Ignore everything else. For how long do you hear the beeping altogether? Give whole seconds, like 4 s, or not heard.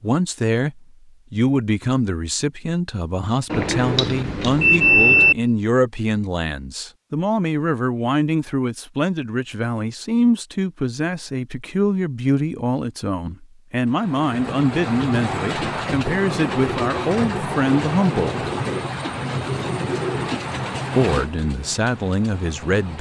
2 s.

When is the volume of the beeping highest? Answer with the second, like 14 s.
5 s.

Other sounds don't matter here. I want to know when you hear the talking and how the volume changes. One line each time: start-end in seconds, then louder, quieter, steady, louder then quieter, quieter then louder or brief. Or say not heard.
0.0-18.4 steady
20.9-22.9 brief.